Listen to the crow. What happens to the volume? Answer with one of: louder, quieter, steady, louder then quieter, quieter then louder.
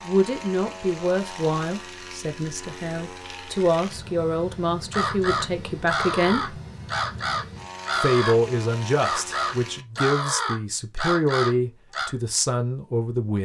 steady.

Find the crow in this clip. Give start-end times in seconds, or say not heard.
4.9-12.1.